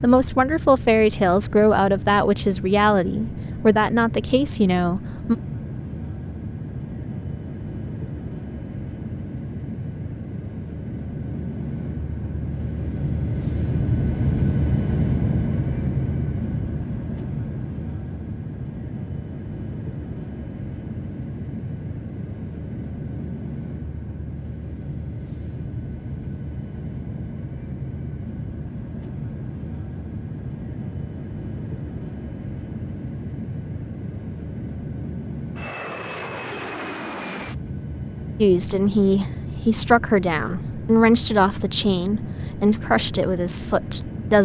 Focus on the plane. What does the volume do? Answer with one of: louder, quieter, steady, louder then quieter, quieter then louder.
louder then quieter.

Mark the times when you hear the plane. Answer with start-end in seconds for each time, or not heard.
0.0-44.4.